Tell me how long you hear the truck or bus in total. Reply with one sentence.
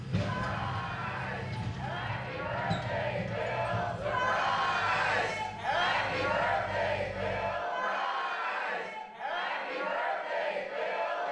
You can hear the truck or bus for 8 seconds altogether.